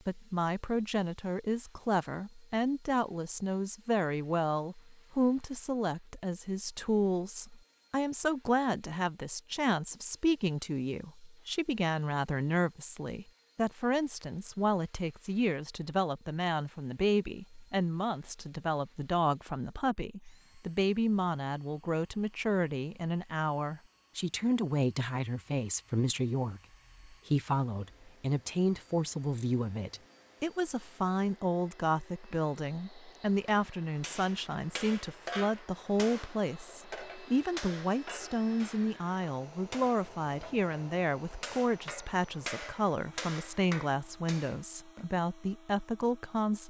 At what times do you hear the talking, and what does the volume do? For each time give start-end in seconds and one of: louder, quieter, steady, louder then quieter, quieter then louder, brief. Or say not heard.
0.1-46.6 steady.